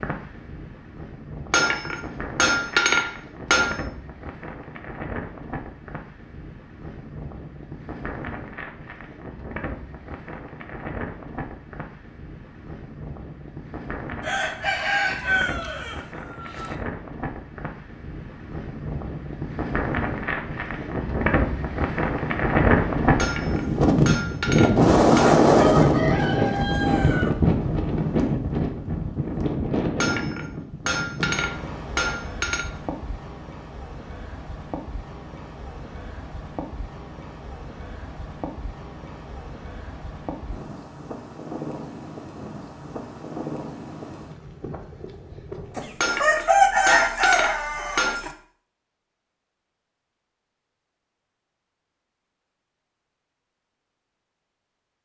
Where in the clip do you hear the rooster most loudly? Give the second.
47 s.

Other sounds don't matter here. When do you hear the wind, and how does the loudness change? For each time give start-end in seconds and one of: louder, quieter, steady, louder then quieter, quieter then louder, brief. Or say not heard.
0.0-46.1 louder then quieter.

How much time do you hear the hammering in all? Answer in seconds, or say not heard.
9 s.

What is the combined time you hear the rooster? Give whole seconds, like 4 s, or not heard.
7 s.